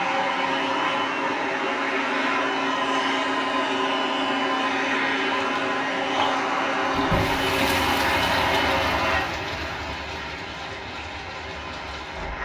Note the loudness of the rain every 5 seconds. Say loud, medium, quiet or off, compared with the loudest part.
off, loud, medium.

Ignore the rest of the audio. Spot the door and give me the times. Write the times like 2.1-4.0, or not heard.
7.0-7.5.